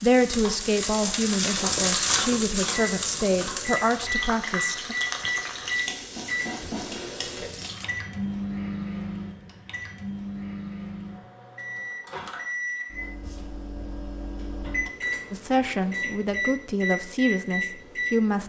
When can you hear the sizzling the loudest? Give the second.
2 s.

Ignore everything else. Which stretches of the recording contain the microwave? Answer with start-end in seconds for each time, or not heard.
2.7-18.4.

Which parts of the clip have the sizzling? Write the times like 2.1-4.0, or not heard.
0.0-7.8.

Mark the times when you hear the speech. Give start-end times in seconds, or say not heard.
0.0-5.0, 15.3-18.4.